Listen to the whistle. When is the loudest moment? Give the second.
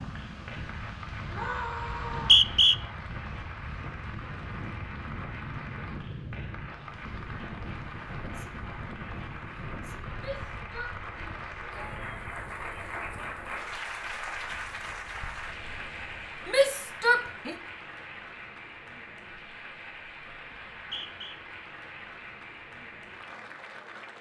2 s.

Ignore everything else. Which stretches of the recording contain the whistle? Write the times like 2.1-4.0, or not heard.
1.9-2.8, 20.5-21.4.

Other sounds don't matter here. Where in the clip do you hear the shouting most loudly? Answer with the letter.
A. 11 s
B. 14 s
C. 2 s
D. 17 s
D.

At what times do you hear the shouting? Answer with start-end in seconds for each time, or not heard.
1.3-2.4, 10.2-12.0, 16.4-17.6.